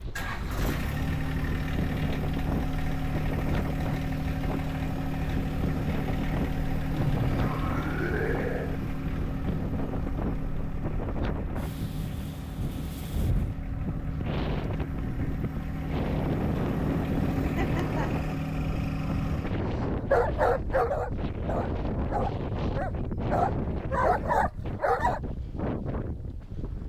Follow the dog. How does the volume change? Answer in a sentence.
The loudness of the dog goes down, then up.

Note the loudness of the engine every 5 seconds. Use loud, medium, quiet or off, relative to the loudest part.
loud, loud, medium, loud, off, off.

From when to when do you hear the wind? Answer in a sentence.
You can hear the wind from 0.0 to 26.8 s.